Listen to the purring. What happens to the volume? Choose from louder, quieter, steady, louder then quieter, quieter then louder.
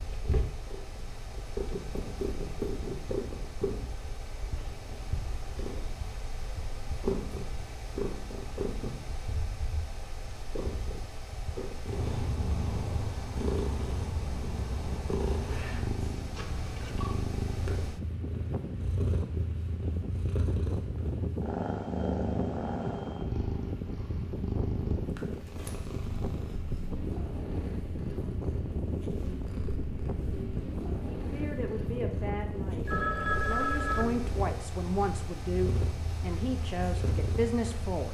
steady.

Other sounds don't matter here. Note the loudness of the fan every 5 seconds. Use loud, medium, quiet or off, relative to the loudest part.
medium, medium, medium, loud, loud, loud, loud, medium.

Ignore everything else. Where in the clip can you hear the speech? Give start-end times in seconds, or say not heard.
31.1-38.1.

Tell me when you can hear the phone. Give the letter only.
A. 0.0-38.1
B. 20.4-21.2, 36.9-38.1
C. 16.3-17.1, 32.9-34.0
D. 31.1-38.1
C.